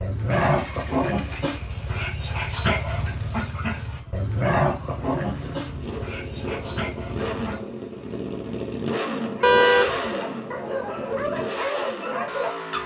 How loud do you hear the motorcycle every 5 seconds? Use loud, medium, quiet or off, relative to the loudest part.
medium, loud, loud.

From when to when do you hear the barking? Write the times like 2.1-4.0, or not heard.
0.0-7.7, 9.3-12.8.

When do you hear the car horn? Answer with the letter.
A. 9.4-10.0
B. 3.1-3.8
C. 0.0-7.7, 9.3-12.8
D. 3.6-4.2
A.